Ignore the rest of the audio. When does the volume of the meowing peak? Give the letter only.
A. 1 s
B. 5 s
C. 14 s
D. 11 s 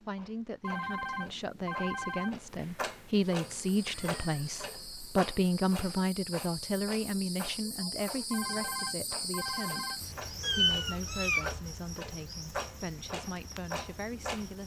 D.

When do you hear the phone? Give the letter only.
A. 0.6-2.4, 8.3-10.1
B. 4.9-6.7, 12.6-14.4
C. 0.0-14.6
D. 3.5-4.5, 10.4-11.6
A.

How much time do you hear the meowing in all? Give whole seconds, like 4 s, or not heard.
2 s.